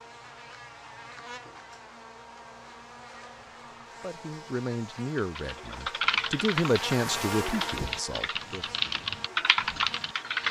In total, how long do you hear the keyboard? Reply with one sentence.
The keyboard can be heard for 5 seconds in total.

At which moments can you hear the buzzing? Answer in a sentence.
The buzzing can be heard from 0.0 to 10.4 s.